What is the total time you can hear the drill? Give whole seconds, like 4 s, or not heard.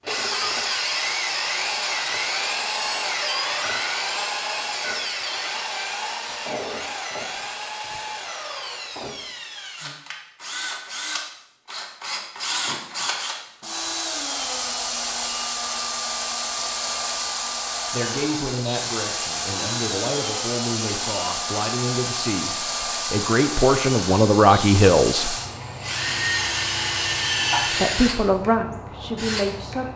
30 s.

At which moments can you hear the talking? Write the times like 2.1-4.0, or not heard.
17.9-25.4, 27.7-29.9.